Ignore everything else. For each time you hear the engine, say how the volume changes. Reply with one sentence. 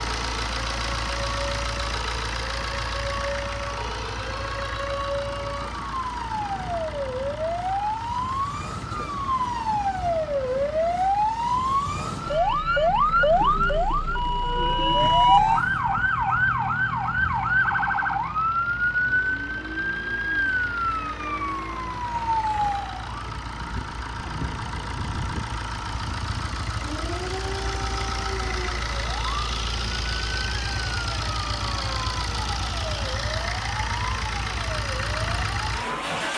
The engine can be heard from 0.0 to 36.3 s, getting quieter then louder.